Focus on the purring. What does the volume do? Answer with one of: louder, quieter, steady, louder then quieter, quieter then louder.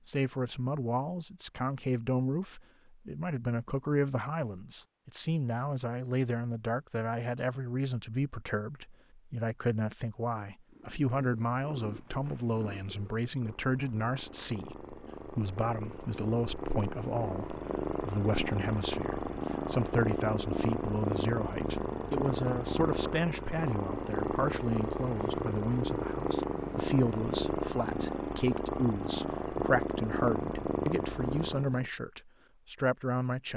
louder.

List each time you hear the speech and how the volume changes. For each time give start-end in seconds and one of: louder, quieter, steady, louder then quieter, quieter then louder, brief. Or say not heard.
0.1-33.5 steady.